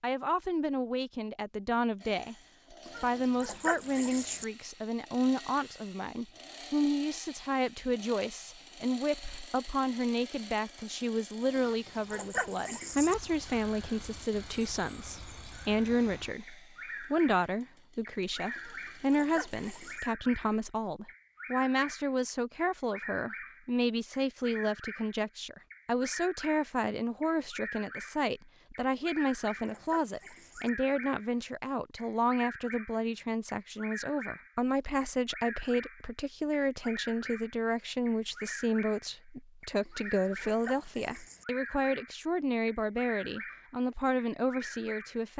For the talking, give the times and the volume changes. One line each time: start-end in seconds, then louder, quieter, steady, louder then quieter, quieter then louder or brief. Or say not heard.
0.0-2.4 brief
3.0-45.3 steady.